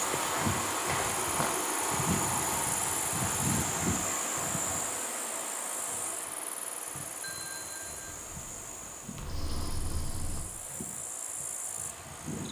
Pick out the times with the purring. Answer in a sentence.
You can hear the purring from 7.8 to 10.4 s.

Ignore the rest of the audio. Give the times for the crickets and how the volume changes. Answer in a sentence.
You can hear the crickets from 0.0 to 12.4 s, getting quieter.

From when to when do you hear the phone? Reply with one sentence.
The phone can be heard from 7.2 to 8.1 s.